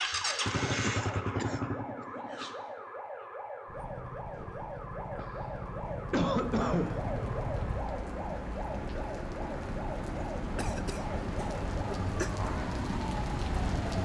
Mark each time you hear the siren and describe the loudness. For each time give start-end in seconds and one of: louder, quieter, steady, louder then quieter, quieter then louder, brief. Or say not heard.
0.0-14.0 steady.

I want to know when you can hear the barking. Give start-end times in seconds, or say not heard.
not heard.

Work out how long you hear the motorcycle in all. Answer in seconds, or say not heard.
8 s.